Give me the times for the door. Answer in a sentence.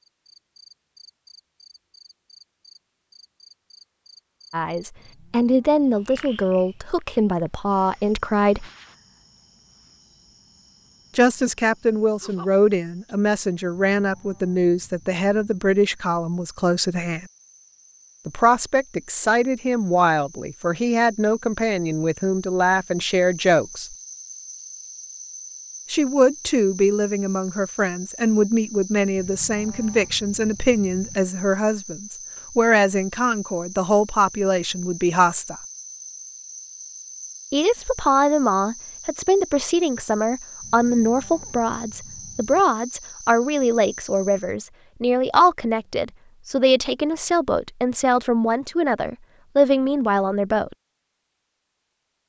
The door can't be heard in this clip.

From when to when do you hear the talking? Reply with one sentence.
You can hear the talking from 4.5 to 8.7 s, from 11.2 to 17.2 s, from 18.2 to 23.9 s, from 25.9 to 35.5 s and from 37.5 to 50.8 s.